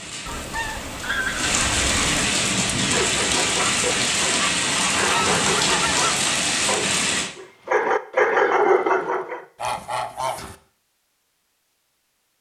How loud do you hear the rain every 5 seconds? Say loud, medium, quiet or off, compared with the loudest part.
loud, loud, off.